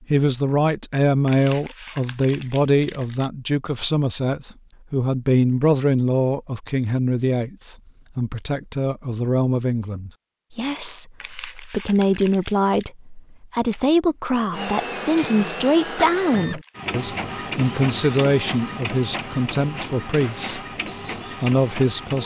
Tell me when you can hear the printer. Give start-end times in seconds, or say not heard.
14.5-22.2.